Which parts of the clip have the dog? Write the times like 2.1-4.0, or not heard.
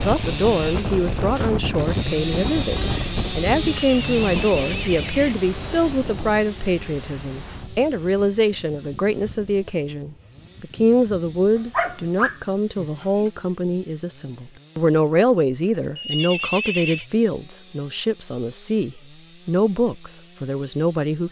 11.6-13.2.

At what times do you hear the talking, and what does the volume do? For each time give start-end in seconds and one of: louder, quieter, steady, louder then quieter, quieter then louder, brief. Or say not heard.
0.0-21.2 steady.